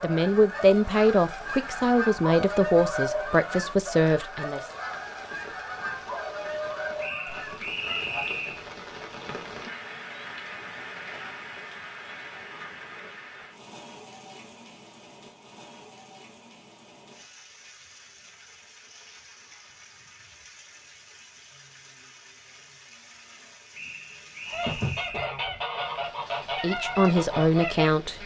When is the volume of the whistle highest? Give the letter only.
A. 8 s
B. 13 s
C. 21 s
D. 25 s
A.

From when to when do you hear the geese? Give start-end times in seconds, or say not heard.
0.0-8.2, 24.4-28.2.